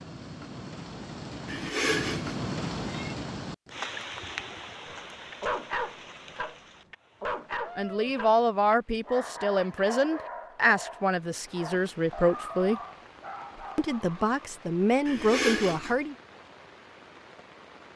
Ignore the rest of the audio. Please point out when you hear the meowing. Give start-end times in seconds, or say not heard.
1.4-3.1, 15.1-15.9.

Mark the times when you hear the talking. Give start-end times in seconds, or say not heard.
7.8-12.8, 13.8-16.1.